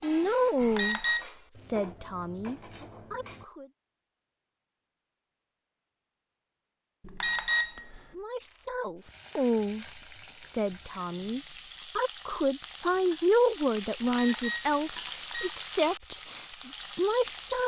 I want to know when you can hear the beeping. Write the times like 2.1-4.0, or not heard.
0.6-1.2, 7.0-8.0, 14.0-15.6.